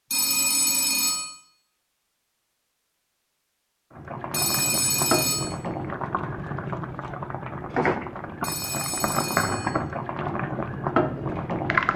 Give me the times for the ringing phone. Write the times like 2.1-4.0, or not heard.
0.1-1.3, 4.3-5.5, 8.4-9.8.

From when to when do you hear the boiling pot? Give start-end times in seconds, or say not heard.
4.0-11.9.